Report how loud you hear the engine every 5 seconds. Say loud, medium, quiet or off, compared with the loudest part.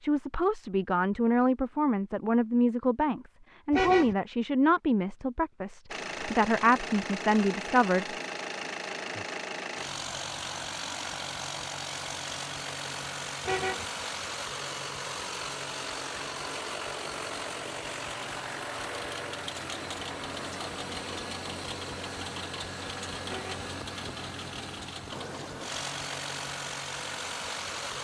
off, loud, loud, loud, loud, loud.